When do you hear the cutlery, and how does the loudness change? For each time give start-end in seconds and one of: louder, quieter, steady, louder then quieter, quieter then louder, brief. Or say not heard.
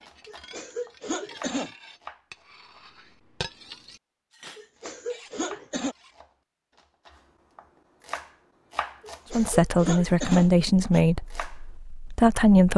0.0-6.2 louder then quieter.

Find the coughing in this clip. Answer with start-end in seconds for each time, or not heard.
0.2-1.7, 4.5-6.0, 9.0-11.1.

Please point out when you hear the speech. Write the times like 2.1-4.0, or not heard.
9.3-12.7.